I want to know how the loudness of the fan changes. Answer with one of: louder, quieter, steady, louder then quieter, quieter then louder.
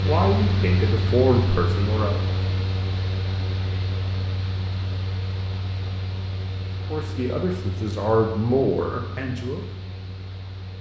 quieter.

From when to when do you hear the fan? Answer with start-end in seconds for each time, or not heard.
0.0-10.7.